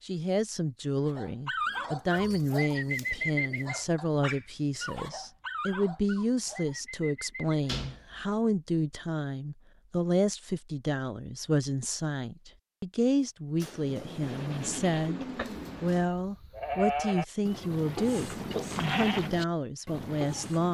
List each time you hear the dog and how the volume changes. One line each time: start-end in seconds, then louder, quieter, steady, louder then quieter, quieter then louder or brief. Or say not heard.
1.1-7.6 quieter.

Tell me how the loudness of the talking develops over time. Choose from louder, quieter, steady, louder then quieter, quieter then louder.
steady.